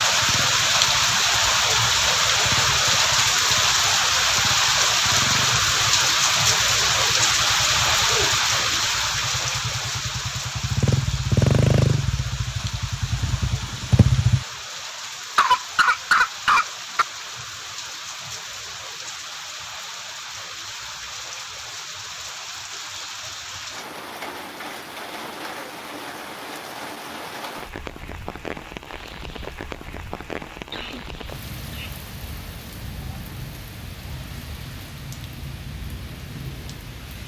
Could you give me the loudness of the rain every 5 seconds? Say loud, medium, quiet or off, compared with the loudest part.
loud, loud, quiet, quiet, quiet, quiet, quiet, quiet.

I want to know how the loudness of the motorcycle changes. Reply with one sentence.
The loudness of the motorcycle goes up.